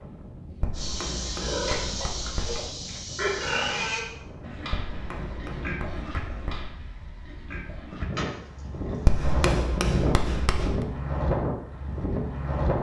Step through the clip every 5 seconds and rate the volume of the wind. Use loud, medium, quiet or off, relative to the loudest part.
quiet, medium, loud.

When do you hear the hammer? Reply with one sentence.
You can hear the hammer from 0.6 to 2.5 s, from 4.7 to 6.7 s and from 9.1 to 10.8 s.